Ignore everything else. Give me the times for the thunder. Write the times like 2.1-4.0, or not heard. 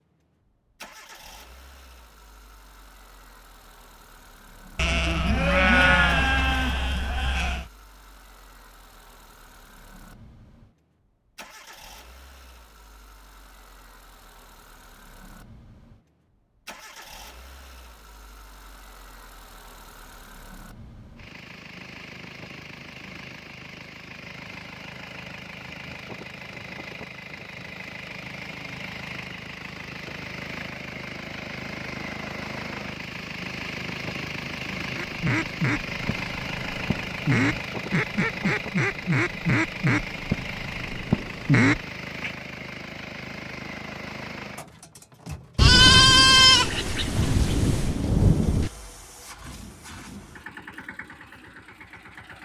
45.5-48.7.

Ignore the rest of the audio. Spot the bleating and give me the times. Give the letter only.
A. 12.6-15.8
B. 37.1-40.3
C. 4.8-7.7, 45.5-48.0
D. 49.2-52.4
C.